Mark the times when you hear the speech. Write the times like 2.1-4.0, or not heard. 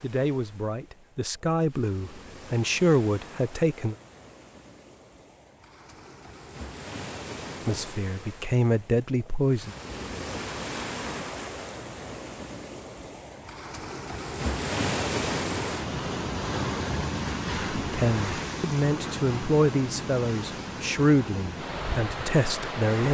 0.0-4.0, 7.7-9.8, 17.8-23.0.